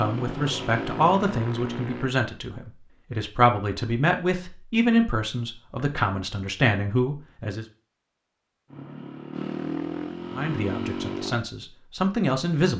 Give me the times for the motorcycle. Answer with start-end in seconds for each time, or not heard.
0.0-2.1, 8.7-11.4.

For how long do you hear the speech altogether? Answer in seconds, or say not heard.
10 s.